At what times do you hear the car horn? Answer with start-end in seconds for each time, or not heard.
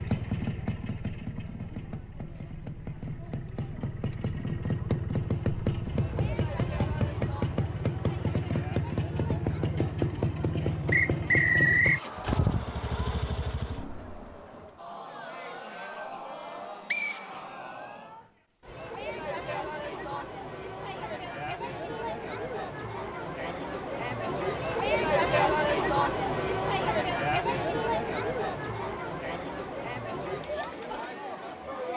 not heard.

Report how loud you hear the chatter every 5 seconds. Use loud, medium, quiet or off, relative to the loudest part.
quiet, quiet, quiet, medium, medium, loud, medium.